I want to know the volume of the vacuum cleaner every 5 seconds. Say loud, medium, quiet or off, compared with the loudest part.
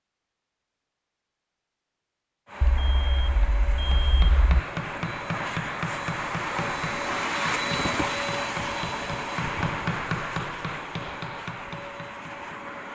medium, loud, medium.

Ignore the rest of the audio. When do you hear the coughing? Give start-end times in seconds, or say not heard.
not heard.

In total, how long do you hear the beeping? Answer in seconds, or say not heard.
2 s.